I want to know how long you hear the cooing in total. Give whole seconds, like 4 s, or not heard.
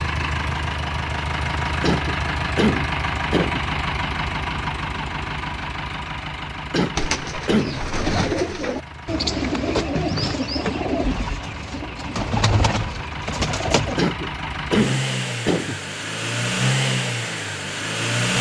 7 s.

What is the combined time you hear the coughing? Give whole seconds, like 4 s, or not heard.
5 s.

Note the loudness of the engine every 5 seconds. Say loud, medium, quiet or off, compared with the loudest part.
loud, medium, medium, loud.